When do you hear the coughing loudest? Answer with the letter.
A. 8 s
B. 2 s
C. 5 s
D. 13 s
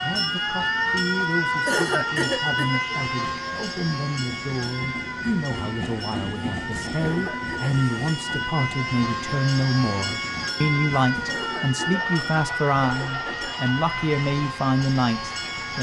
B.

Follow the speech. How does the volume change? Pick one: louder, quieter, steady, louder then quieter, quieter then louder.
louder.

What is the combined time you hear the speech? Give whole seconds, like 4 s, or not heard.
16 s.